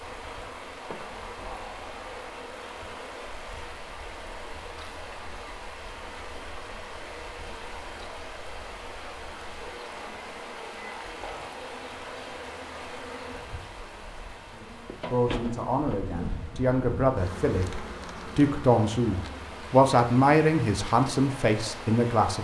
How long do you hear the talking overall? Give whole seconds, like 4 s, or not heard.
8 s.